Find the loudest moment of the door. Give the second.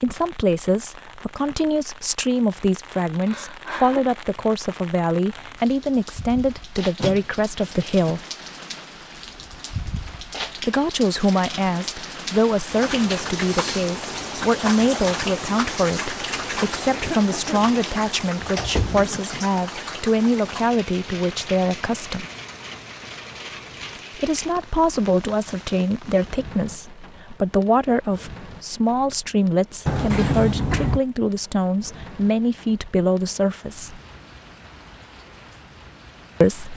30 s.